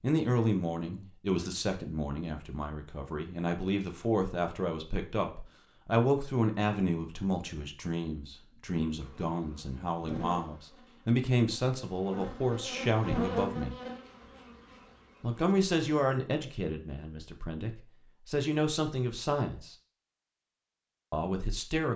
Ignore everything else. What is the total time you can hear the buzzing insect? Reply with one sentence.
The buzzing insect can be heard for 7 seconds in total.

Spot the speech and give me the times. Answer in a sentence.
The speech can be heard from 0.0 to 13.8 s, from 15.2 to 19.8 s and from 21.1 to 21.9 s.